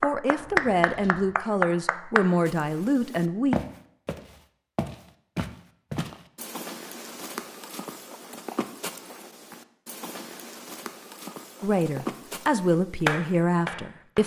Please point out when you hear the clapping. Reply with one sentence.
You can hear the clapping from 0.0 to 2.2 s and from 13.1 to 14.2 s.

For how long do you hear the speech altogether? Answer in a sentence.
You can hear the speech for 6 seconds altogether.